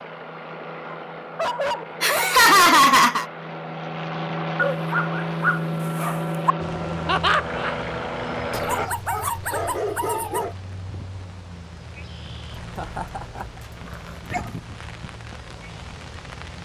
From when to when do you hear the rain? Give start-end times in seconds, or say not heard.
6.6-16.5.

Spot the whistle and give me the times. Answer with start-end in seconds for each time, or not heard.
not heard.